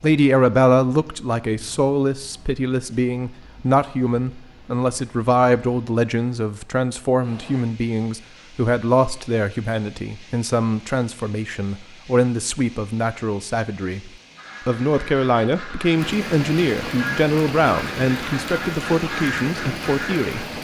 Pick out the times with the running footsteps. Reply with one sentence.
You can't hear the running footsteps here.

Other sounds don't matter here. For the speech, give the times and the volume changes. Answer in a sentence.
You can hear the speech from 0.0 to 20.4 s, at a steady volume.